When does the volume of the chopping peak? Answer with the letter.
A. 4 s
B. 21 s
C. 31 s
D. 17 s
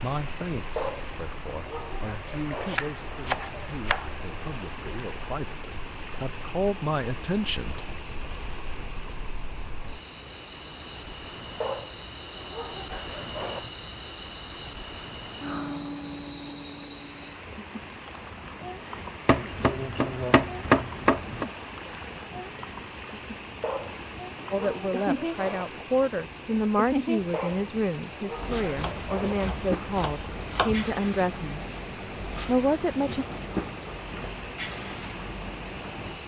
B.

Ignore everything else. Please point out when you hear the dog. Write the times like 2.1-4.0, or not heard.
0.8-2.8, 11.6-13.6, 23.6-25.6, 27.3-29.4.